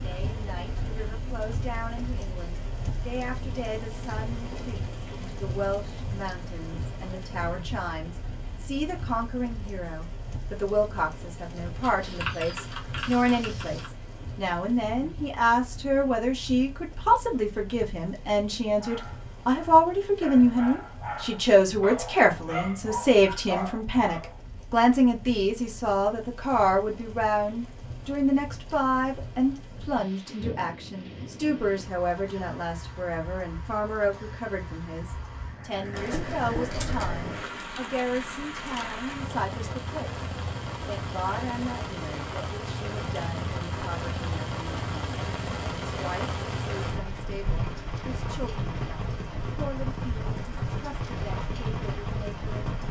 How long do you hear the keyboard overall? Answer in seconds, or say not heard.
4 s.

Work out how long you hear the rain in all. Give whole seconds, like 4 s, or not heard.
53 s.